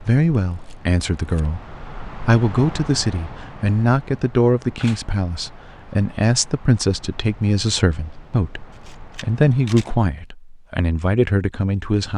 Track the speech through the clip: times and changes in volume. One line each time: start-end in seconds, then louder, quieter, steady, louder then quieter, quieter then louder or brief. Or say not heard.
0.0-12.1 steady.